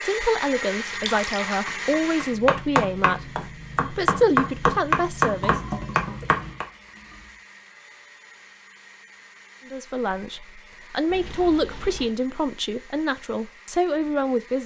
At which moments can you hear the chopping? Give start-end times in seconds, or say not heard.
1.6-6.7.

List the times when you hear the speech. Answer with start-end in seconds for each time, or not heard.
0.0-5.6, 9.7-14.6.